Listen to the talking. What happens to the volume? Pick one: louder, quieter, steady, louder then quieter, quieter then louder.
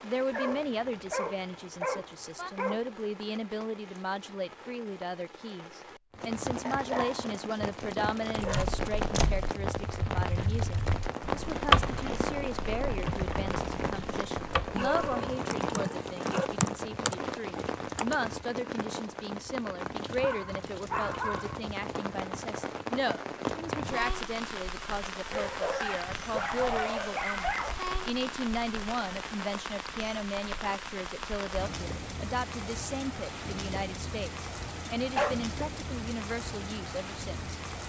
steady.